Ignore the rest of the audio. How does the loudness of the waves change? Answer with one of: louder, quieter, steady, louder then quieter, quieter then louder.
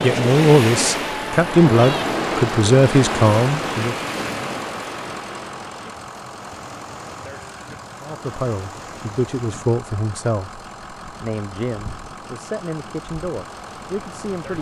quieter.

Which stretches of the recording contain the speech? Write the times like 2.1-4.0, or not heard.
0.0-4.0, 8.0-14.5.